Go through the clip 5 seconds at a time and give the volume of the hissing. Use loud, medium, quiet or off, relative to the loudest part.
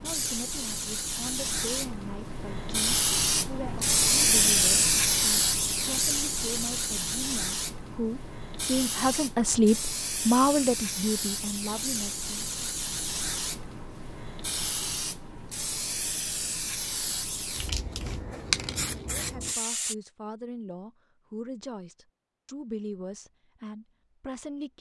loud, loud, medium, medium, off.